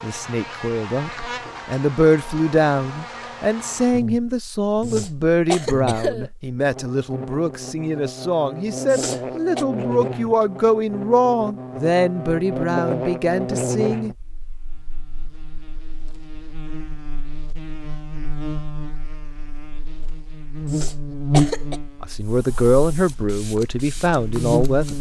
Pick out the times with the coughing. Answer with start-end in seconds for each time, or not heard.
4.8-6.3, 8.9-9.7, 20.7-21.8.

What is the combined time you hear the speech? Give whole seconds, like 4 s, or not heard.
17 s.